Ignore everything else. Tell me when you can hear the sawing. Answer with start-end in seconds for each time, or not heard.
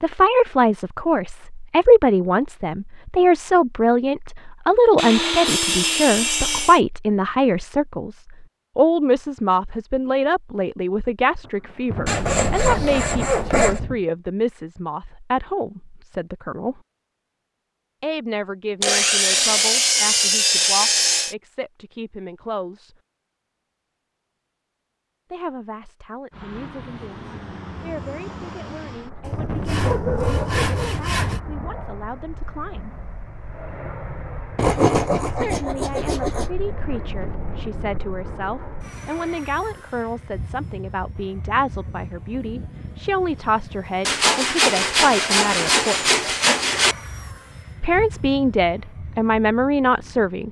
5.0-6.8, 12.1-13.8, 18.8-21.4, 29.2-31.4, 34.5-36.5, 44.0-47.0.